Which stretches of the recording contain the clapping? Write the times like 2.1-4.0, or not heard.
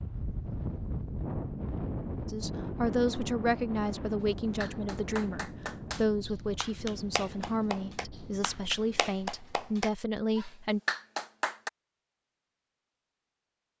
4.6-11.7.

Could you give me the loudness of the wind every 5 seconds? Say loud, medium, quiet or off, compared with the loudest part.
loud, medium, off.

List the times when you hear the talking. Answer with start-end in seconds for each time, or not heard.
2.2-10.8.